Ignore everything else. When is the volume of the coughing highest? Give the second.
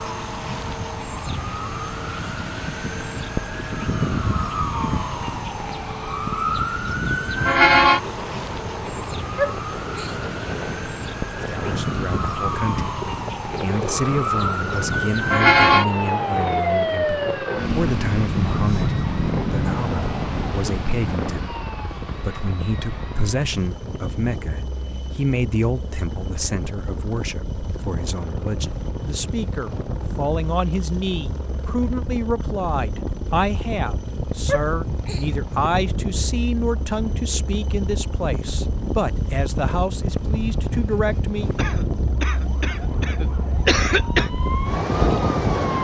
44 s.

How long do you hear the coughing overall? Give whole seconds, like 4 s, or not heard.
3 s.